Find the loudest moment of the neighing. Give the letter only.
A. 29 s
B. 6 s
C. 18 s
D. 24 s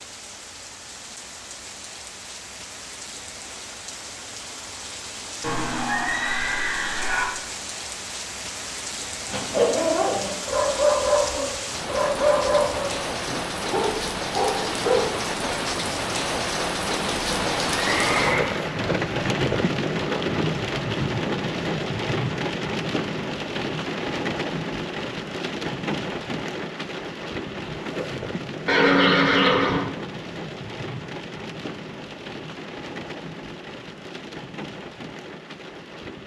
A.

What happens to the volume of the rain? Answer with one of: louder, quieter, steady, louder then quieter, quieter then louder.
louder then quieter.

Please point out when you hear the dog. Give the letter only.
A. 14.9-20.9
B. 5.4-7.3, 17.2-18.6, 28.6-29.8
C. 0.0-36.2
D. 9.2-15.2
D.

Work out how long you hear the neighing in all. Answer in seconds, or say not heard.
4 s.